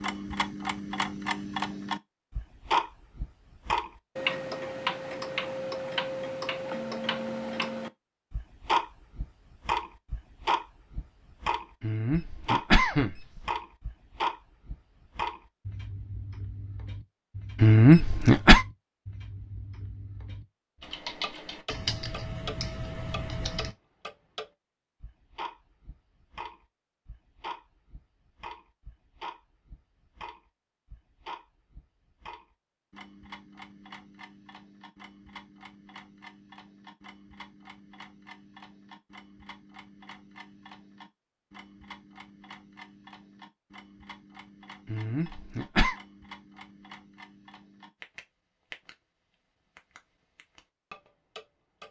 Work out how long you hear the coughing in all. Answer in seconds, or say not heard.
4 s.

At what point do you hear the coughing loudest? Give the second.
18 s.